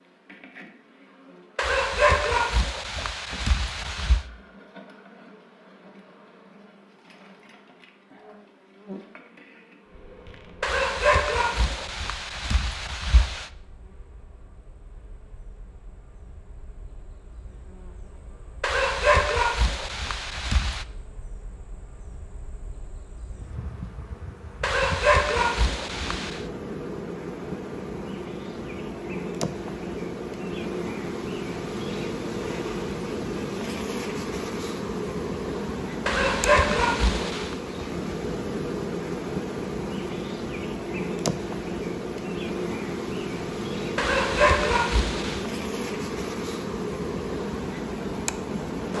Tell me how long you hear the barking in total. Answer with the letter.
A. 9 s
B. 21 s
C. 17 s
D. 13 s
D.